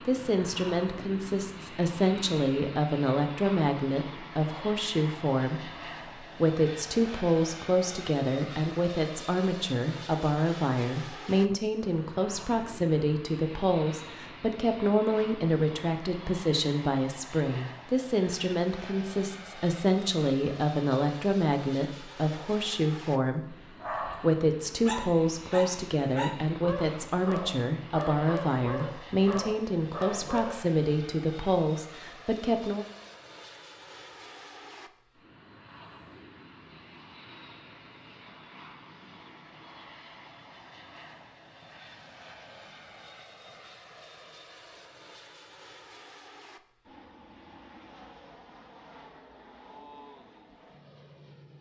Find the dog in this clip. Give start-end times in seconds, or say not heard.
23.8-30.6.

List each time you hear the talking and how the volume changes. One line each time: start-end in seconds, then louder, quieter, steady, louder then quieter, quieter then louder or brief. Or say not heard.
0.1-32.9 steady.